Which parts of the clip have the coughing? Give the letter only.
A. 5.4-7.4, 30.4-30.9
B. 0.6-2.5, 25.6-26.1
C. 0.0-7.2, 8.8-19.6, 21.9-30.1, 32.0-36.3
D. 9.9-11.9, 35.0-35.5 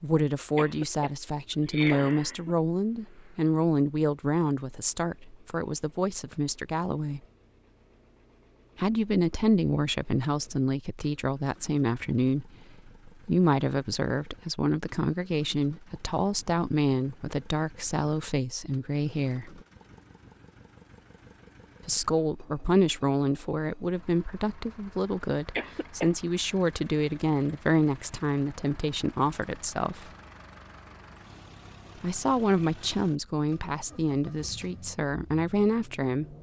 B.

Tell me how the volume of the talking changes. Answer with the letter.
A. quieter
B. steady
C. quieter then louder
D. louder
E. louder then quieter
B.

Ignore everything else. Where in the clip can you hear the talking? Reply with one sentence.
You can hear the talking from 0.0 to 7.2 s, from 8.8 to 19.6 s, from 21.9 to 30.1 s and from 32.0 to 36.3 s.